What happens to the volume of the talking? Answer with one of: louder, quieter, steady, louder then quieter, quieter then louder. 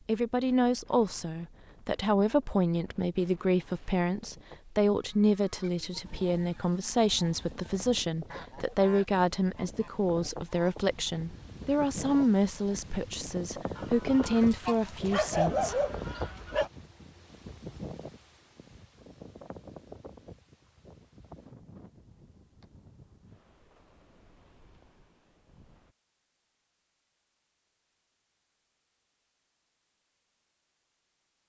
steady.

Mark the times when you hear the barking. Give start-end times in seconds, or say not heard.
14.2-16.7.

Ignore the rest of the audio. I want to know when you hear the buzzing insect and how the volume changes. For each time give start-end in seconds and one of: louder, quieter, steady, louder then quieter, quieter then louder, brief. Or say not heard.
not heard.